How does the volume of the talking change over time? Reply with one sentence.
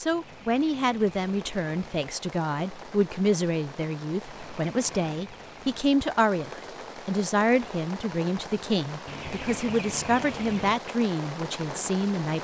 The loudness of the talking stays about the same.